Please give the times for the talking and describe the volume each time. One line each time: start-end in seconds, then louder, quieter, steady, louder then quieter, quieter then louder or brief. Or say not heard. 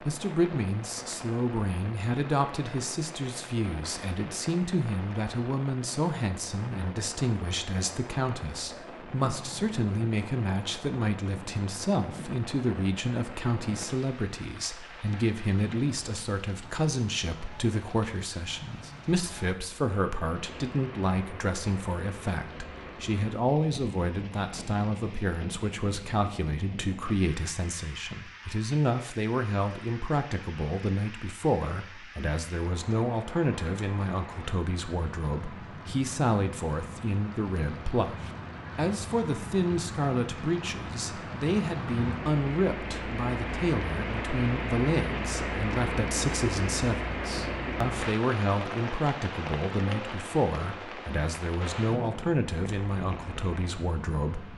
0.0-54.5 steady.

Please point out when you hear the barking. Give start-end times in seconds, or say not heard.
not heard.